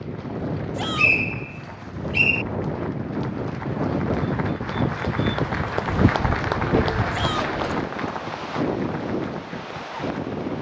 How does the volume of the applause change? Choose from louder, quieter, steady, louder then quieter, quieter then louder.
louder then quieter.